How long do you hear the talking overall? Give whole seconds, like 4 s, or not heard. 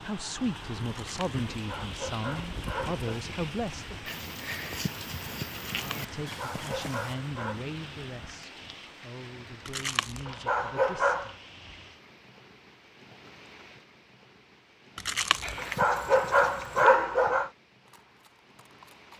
10 s.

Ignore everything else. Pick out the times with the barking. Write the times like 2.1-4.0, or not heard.
0.8-3.2, 5.7-7.6, 9.7-11.3, 14.9-17.5.